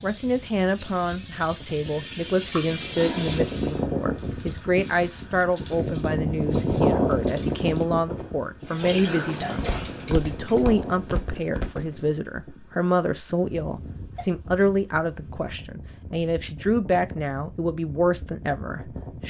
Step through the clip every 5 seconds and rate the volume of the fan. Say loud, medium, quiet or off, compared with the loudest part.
medium, loud, quiet, quiet.